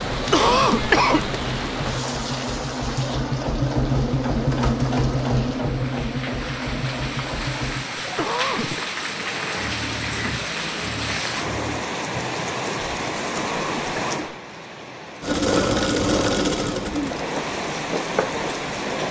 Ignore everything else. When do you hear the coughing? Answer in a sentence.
You can hear the coughing from 0.1 to 1.4 s, from 8.0 to 8.8 s and from 13.2 to 14.3 s.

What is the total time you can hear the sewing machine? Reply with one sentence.
You can hear the sewing machine for 16 seconds altogether.